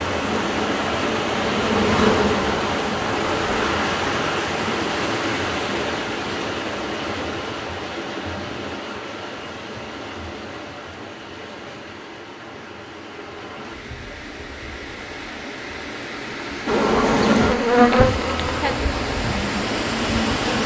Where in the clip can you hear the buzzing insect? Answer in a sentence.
The buzzing insect can be heard from 0.0 to 3.6 s and from 16.6 to 20.6 s.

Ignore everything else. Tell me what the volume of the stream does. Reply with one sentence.
The volume of the stream goes down, then up.